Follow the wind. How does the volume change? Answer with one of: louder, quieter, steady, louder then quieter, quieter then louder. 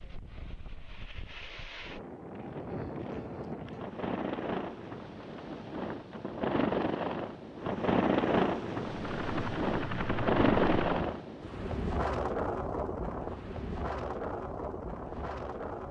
louder then quieter.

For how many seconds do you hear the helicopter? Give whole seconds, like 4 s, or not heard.
2 s.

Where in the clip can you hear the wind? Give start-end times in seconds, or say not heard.
0.0-15.8.